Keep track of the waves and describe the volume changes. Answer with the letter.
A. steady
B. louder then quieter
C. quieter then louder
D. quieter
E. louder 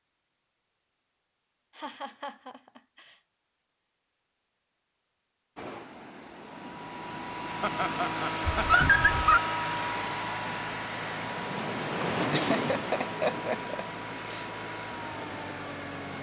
B.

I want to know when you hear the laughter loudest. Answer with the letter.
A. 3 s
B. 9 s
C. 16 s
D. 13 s
D.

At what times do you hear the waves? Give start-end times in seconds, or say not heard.
5.5-16.1.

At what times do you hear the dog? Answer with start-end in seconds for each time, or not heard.
8.5-9.4.